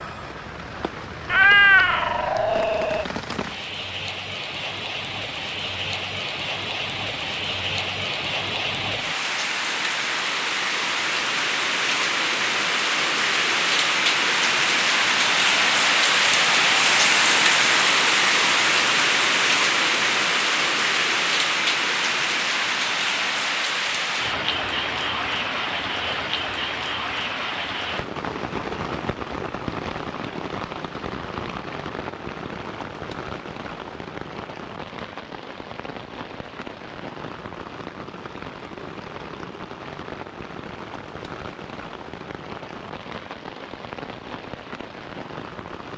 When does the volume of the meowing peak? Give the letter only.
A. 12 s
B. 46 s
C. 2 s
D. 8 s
C.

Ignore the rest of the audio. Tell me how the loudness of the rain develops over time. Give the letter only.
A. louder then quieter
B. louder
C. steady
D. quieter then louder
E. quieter
A.